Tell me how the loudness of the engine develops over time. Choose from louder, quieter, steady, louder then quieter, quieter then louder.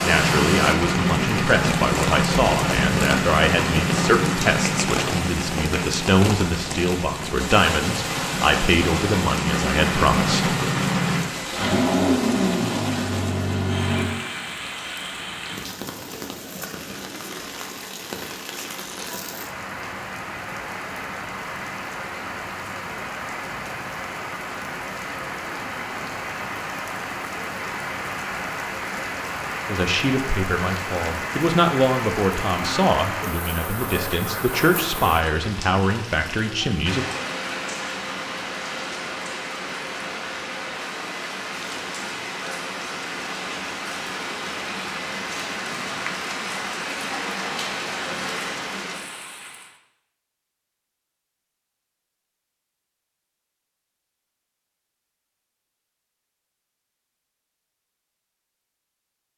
quieter then louder.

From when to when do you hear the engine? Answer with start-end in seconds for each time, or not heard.
0.0-14.1.